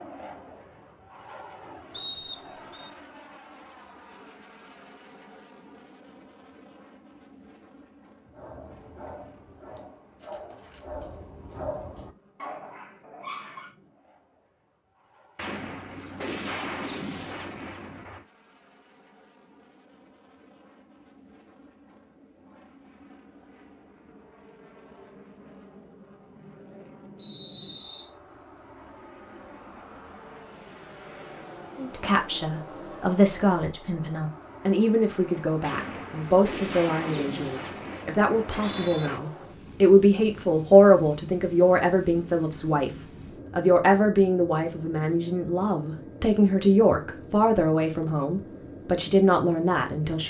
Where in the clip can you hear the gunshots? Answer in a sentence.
You can hear the gunshots from 15.3 to 18.2 s and from 35.6 to 39.2 s.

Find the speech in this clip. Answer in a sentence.
You can hear the speech from 31.8 to 50.2 s.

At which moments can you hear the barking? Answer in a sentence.
You can hear the barking from 8.2 to 13.7 s.